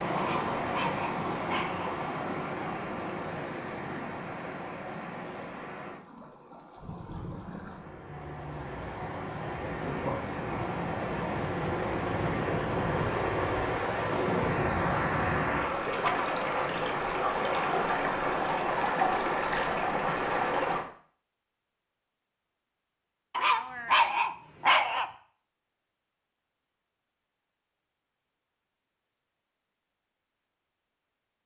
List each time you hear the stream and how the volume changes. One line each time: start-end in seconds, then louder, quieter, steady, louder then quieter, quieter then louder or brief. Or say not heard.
0.0-20.9 quieter then louder.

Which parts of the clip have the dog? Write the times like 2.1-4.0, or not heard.
0.1-1.9, 23.3-25.1.